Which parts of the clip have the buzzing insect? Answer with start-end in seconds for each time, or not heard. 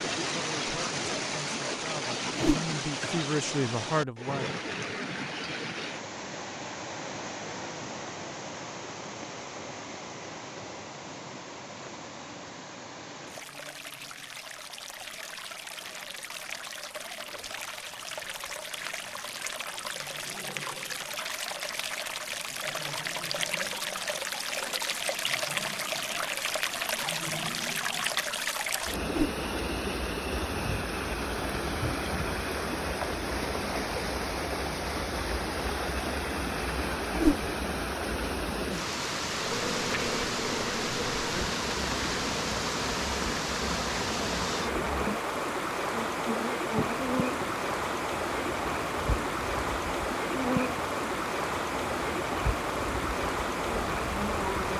39.3-54.7.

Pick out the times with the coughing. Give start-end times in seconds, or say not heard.
not heard.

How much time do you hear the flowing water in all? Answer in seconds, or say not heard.
55 s.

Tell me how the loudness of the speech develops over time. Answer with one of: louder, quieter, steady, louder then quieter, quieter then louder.
louder.